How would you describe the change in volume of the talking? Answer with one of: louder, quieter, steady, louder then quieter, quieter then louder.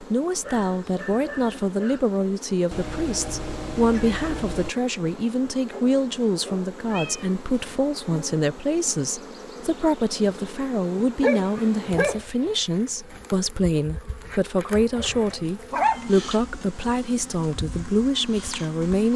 steady.